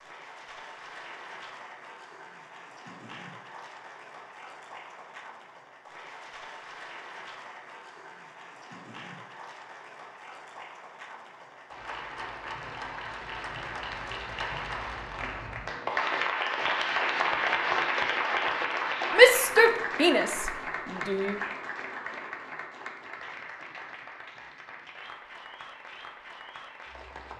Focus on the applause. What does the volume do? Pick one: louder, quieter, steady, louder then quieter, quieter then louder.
louder then quieter.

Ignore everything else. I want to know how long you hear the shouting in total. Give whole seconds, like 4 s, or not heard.
2 s.